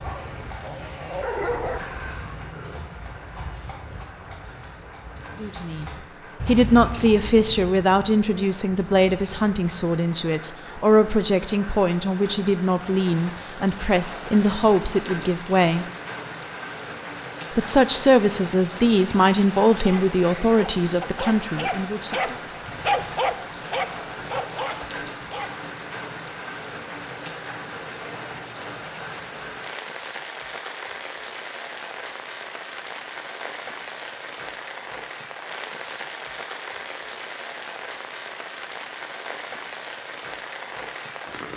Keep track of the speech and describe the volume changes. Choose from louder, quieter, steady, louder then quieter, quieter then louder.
steady.